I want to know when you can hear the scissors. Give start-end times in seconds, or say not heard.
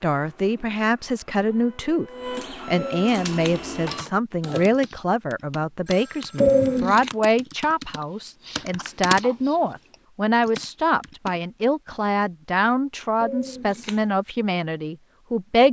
2.8-3.5, 6.4-7.1, 13.2-13.9.